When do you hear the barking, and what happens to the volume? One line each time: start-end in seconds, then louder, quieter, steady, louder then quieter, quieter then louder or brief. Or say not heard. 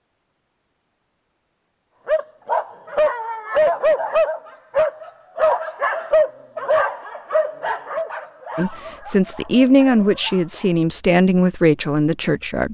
2.0-10.8 quieter.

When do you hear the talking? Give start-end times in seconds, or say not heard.
8.6-12.6.